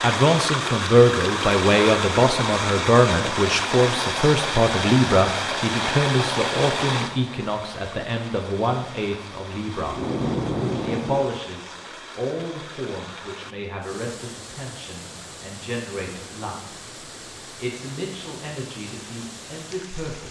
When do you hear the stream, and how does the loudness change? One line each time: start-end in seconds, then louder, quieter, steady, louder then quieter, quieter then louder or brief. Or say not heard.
0.0-20.2 quieter.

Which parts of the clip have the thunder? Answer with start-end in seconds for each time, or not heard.
9.8-11.2.